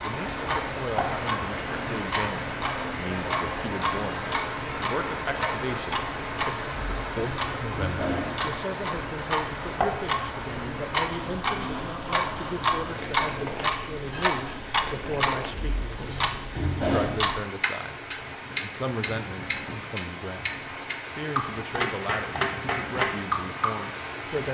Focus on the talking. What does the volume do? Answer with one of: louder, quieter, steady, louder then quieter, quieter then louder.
steady.